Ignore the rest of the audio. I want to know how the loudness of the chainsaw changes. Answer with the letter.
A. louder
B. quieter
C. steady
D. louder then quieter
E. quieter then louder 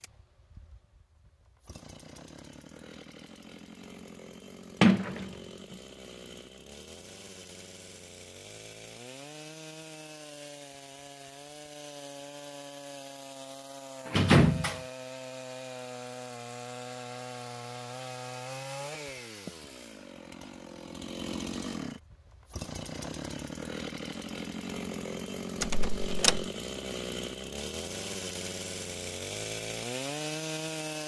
A.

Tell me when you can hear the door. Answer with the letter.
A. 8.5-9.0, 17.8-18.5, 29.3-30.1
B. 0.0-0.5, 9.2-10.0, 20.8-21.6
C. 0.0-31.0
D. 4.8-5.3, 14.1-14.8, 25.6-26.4
D.